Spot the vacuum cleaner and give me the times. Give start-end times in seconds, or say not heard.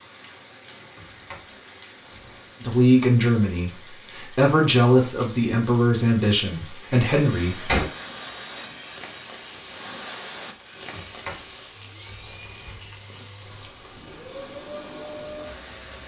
7.1-16.0.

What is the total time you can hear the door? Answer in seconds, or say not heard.
5 s.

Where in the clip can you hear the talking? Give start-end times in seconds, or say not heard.
2.6-7.8.